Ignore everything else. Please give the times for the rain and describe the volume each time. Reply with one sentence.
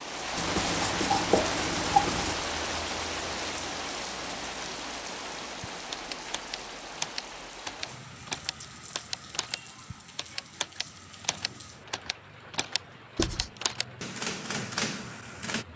You can hear the rain from 0.0 to 15.7 s, getting quieter.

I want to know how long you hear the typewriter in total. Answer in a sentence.
The typewriter can be heard for 10 seconds in total.